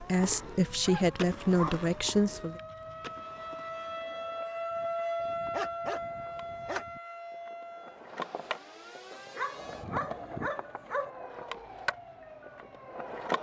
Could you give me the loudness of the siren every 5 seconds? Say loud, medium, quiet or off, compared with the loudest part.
loud, loud, medium.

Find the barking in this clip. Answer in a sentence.
You can hear the barking from 0.7 to 2.4 s, from 5.2 to 7.0 s and from 9.1 to 11.1 s.